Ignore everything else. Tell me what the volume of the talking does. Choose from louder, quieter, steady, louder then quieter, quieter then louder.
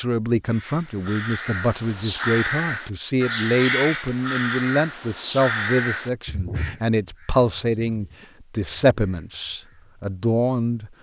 steady.